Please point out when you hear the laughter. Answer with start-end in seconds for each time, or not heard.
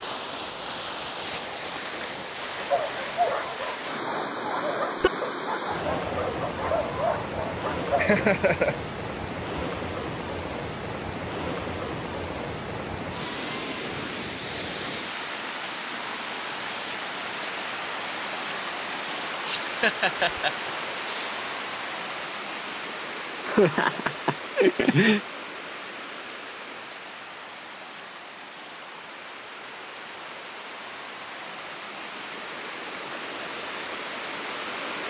8.0-8.8, 19.4-21.3, 23.4-25.2.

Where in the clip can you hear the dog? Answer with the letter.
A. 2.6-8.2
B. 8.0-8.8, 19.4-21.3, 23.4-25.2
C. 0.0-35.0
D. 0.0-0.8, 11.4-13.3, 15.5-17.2
A.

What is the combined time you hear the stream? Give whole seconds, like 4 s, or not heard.
35 s.